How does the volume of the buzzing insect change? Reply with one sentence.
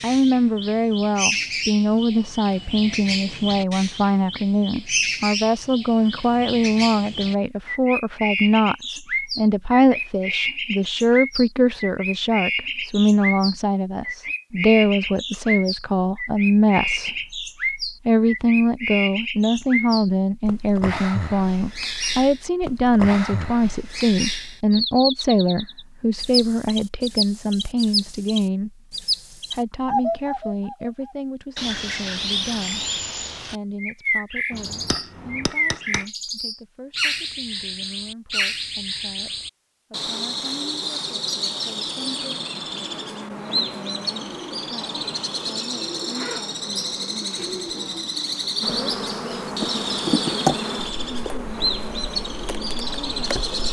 The loudness of the buzzing insect goes up, then down.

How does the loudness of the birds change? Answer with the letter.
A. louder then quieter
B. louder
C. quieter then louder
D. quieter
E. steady
E.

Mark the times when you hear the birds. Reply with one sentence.
The birds can be heard from 0.0 to 53.6 s.